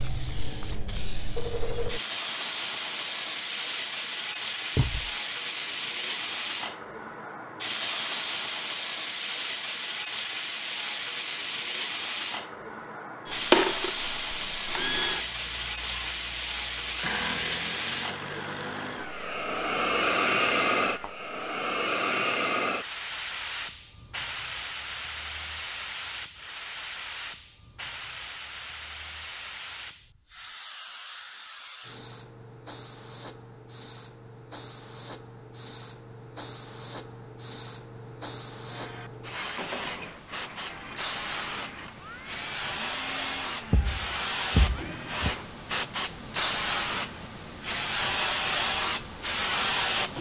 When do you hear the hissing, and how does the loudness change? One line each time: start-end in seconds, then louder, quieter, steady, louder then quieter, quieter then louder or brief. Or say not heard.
0.0-50.1 quieter then louder.